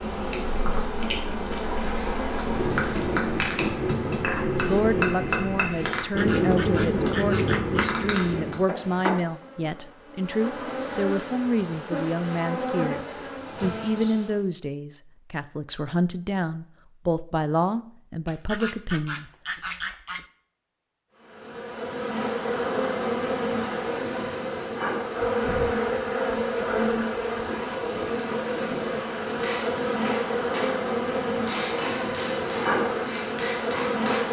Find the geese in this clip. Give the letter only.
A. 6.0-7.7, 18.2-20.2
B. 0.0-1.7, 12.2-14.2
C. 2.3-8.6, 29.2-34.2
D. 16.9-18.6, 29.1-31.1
A.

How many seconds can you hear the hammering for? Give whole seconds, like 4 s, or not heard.
11 s.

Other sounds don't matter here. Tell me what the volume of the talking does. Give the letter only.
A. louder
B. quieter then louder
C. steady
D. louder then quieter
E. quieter
C.